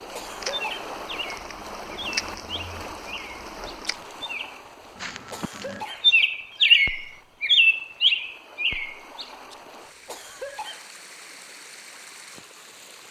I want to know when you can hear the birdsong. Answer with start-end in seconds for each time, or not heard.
0.0-9.3.